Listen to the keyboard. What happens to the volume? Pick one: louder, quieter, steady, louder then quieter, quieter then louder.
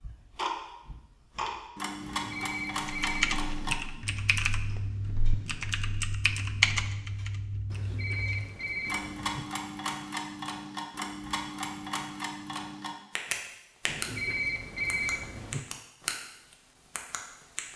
quieter then louder.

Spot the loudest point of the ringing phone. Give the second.
15 s.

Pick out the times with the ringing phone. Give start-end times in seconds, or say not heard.
2.0-3.8, 7.7-9.4, 13.8-15.6.